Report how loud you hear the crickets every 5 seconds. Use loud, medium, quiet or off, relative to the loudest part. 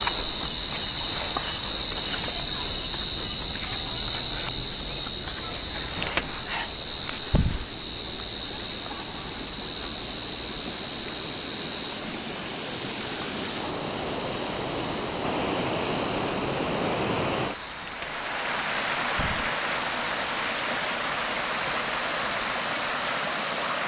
loud, medium, medium, quiet, quiet.